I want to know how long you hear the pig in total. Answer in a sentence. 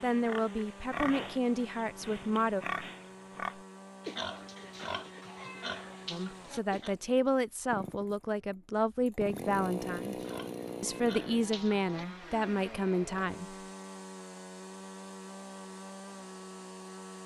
You can hear the pig for 9 seconds altogether.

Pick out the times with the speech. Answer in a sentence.
The speech can be heard from 0.0 to 2.6 s, from 6.1 to 10.2 s and from 10.8 to 13.6 s.